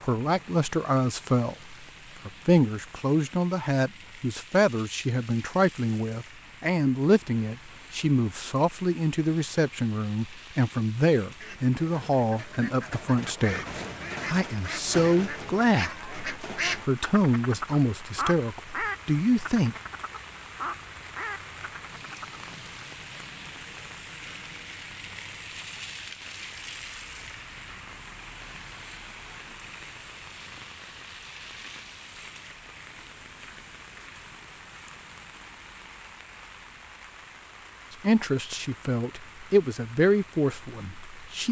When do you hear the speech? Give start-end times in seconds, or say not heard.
0.0-19.8, 38.0-41.4.